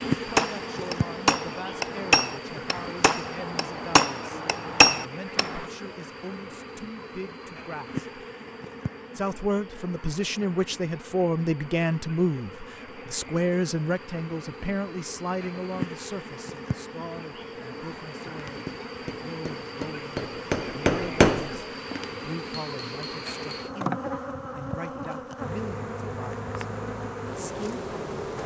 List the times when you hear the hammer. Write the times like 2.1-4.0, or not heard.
0.2-5.6, 18.4-23.8.